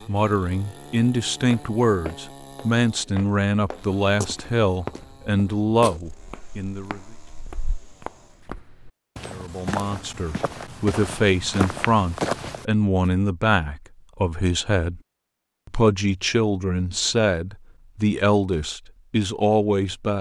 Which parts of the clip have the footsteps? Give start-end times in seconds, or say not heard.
1.5-12.7.